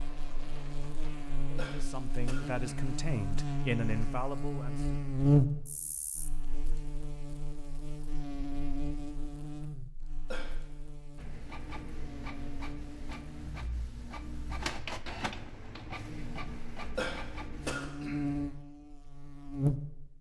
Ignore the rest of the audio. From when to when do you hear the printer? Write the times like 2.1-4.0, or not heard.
0.0-1.6, 11.2-17.8.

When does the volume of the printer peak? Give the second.
15 s.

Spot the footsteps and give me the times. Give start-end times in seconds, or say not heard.
not heard.